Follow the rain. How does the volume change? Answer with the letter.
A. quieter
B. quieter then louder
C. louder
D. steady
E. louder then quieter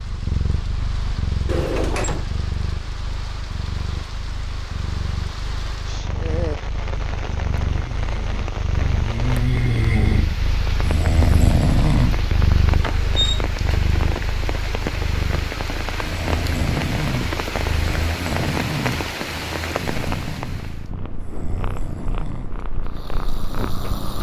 C.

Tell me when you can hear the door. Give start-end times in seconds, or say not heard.
1.4-2.2, 12.8-13.4.